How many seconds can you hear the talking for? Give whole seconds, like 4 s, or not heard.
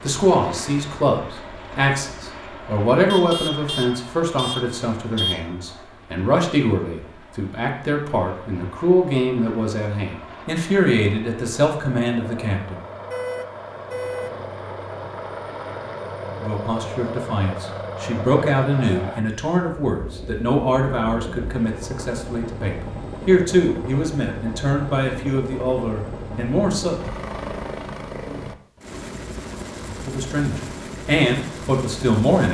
26 s.